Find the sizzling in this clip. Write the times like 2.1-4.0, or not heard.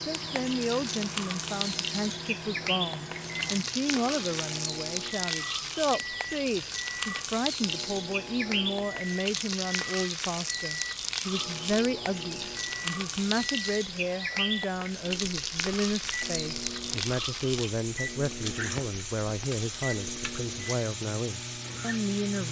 0.0-22.4.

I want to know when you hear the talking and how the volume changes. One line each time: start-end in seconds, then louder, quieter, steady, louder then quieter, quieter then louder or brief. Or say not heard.
0.0-22.4 steady.